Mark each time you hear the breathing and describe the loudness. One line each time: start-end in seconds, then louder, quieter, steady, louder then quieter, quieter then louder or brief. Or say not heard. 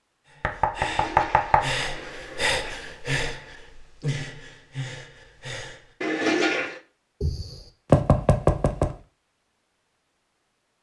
0.2-5.9 louder then quieter.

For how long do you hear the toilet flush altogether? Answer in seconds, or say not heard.
3 s.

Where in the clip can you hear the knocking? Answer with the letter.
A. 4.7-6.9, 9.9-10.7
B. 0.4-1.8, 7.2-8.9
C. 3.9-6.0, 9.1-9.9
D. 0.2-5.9
B.